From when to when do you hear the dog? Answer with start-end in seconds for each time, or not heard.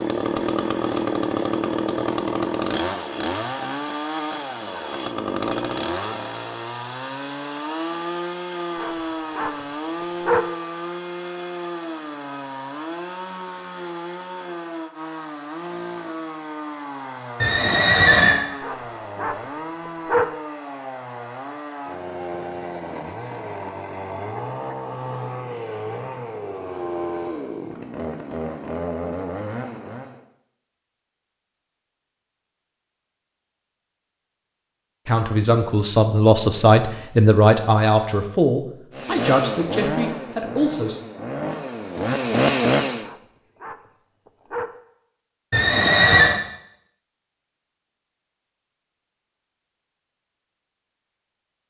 8.8-10.5, 18.6-20.4, 43.0-44.8.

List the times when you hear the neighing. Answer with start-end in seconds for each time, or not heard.
17.4-18.4, 45.5-46.4.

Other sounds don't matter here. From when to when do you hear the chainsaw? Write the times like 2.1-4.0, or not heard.
0.0-30.2, 39.0-43.1.